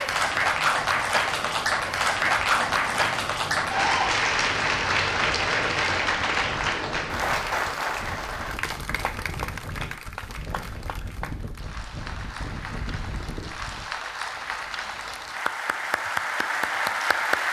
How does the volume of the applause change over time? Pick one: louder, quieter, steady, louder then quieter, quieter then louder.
quieter then louder.